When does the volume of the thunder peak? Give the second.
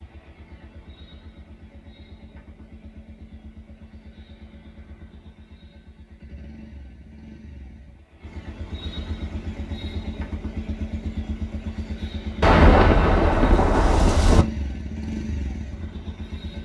13 s.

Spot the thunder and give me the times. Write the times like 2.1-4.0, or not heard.
12.4-14.4.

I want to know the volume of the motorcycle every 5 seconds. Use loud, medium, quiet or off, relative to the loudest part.
quiet, medium, loud, loud.